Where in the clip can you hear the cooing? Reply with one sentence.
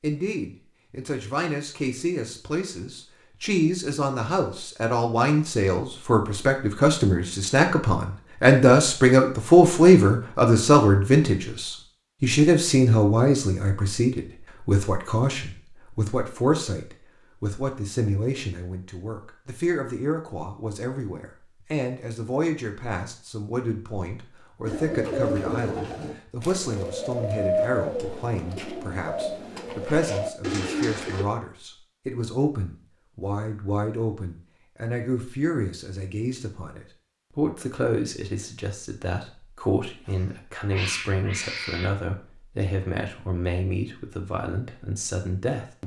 You can hear the cooing from 24.6 to 31.2 s.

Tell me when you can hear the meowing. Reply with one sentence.
You can hear the meowing from 40.0 to 41.9 s.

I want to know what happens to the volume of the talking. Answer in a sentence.
The volume of the talking goes down.